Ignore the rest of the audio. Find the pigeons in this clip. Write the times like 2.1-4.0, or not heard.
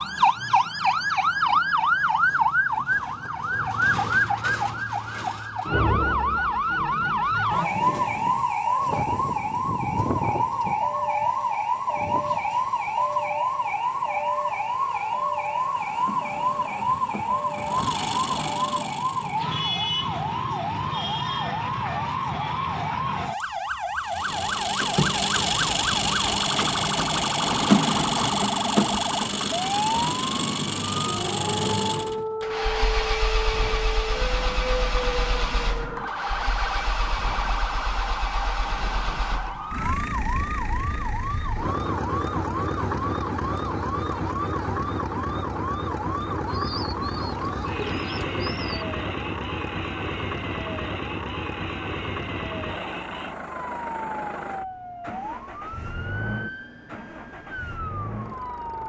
46.4-48.9.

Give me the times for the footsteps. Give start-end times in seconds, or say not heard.
not heard.